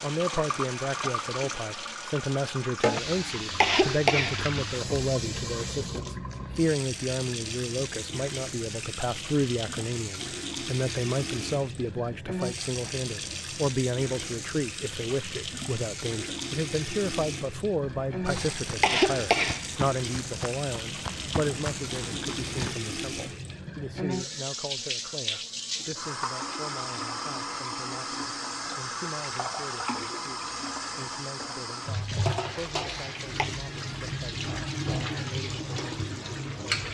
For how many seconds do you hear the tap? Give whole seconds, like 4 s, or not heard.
37 s.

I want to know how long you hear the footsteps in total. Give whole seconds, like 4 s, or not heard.
5 s.